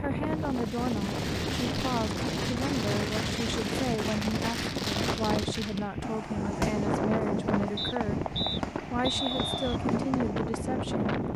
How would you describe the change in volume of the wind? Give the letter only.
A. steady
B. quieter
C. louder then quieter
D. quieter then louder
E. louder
A.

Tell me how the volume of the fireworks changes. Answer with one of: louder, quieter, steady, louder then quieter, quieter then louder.
steady.